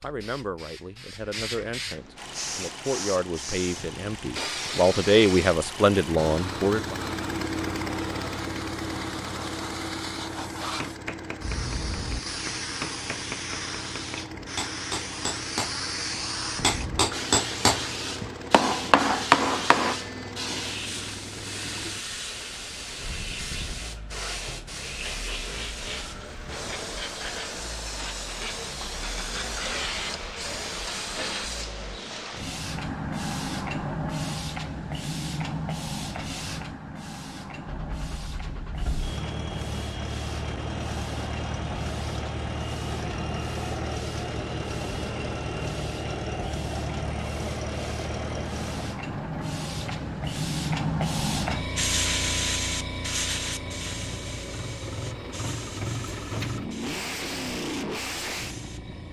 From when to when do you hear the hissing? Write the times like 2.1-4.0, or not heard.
0.0-59.0.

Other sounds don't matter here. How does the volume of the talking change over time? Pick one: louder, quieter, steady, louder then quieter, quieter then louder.
louder.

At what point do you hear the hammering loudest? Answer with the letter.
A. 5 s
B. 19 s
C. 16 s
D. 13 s
B.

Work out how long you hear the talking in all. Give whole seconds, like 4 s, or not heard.
7 s.